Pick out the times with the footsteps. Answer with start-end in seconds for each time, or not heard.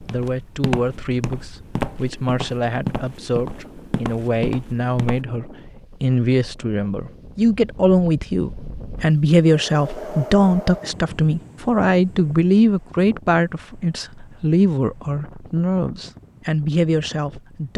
0.0-5.2.